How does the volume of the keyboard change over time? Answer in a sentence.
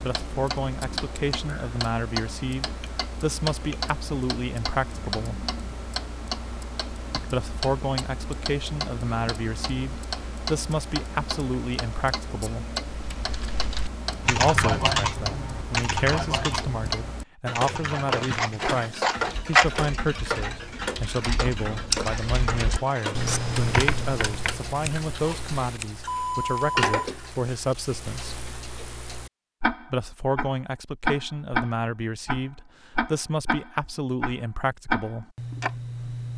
The volume of the keyboard goes down, then up.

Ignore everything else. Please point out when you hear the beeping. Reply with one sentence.
You can hear the beeping from 26.1 to 27.1 s.